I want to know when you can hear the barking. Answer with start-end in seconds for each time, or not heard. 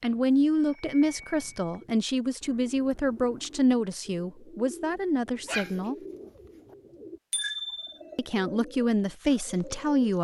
5.5-6.8.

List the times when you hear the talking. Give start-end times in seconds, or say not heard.
0.0-6.0, 8.2-10.2.